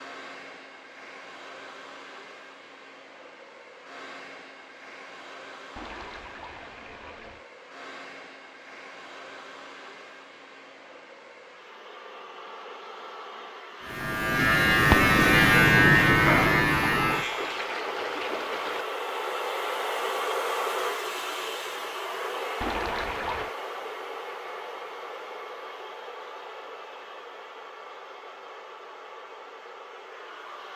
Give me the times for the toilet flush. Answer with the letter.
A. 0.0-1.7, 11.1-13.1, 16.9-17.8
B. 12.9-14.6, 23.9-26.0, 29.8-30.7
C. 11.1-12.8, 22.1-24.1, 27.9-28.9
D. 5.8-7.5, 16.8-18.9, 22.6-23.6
D.